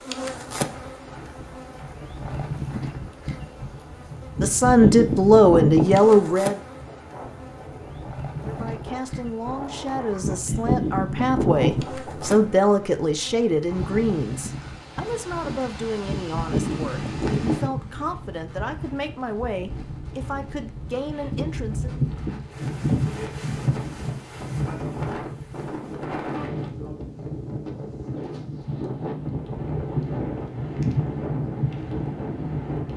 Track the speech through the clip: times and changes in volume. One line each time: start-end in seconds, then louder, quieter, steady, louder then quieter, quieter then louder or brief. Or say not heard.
4.4-6.5 brief
8.4-22.0 louder then quieter.